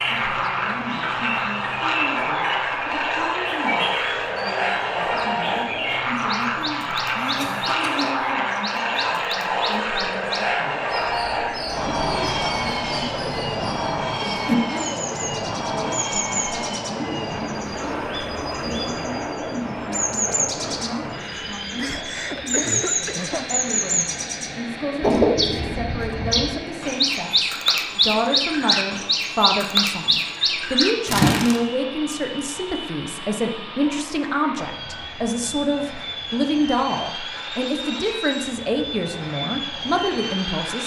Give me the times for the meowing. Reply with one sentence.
You can't hear the meowing here.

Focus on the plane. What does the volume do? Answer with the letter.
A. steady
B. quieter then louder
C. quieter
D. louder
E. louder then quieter
C.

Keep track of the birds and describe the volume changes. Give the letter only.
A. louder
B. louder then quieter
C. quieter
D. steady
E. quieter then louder
A.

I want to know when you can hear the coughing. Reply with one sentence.
You can hear the coughing from 7.2 to 8.2 s and from 21.8 to 23.4 s.